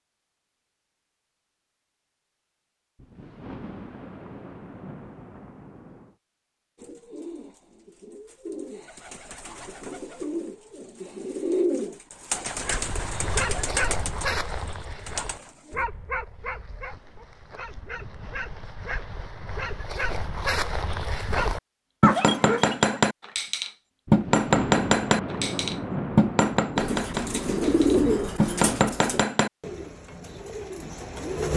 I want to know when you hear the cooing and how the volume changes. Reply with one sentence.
The cooing can be heard from 6.8 to 15.8 s, getting louder then quieter; and from 26.8 to 31.5 s, getting quieter.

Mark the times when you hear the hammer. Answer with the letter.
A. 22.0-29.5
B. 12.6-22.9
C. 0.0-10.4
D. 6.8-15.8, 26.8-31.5
A.